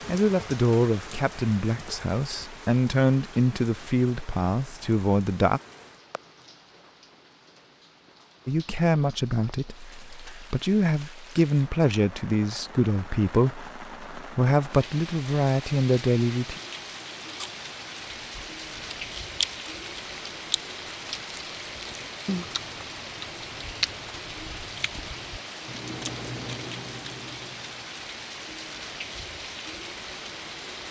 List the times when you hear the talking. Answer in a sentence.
The talking can be heard from 0.1 to 5.6 s and from 8.4 to 16.6 s.